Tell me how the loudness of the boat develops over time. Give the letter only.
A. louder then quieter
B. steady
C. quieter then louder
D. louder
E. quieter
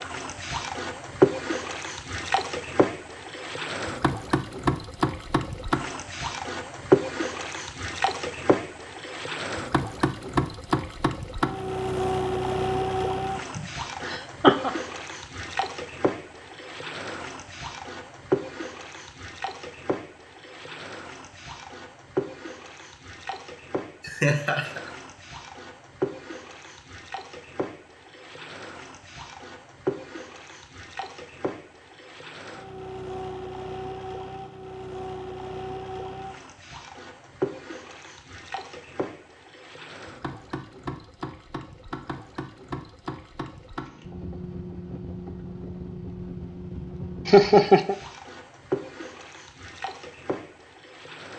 E.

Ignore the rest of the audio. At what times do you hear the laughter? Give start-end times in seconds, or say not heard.
13.3-14.7, 24.0-24.9, 47.2-48.0.